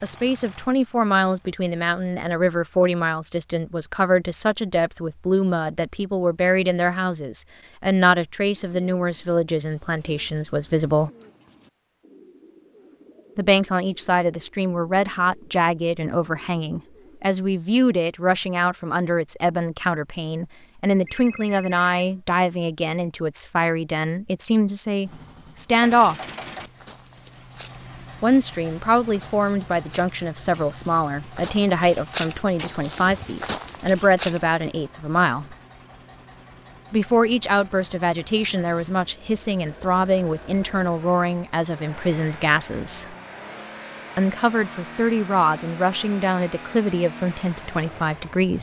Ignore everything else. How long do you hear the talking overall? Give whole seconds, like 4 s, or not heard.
42 s.